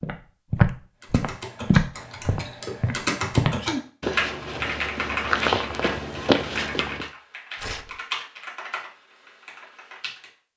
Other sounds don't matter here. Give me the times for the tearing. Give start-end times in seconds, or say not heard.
7.5-8.0.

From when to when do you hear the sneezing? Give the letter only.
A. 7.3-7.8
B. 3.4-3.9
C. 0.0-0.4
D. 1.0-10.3
B.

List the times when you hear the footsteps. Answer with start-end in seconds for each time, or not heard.
0.0-7.0.